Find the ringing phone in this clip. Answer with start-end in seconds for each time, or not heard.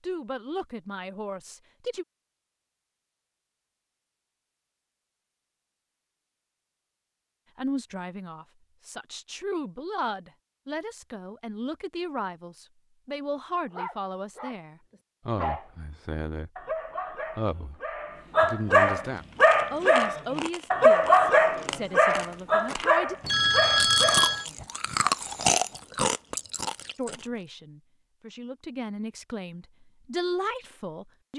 23.2-24.4.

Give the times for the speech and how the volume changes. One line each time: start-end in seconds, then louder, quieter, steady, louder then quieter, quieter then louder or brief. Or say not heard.
0.0-2.0 brief
7.5-23.1 steady
26.9-31.3 louder.